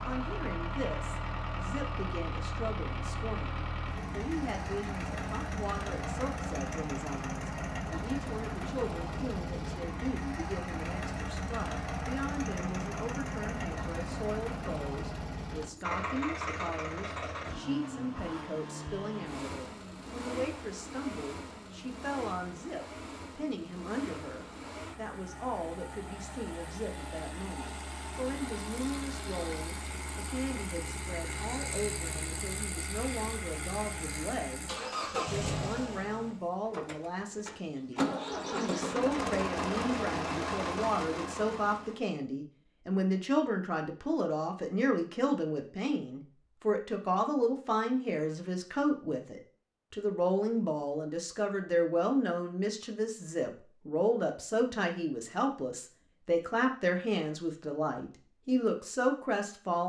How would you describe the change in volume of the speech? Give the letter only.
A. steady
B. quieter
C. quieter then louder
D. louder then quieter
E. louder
E.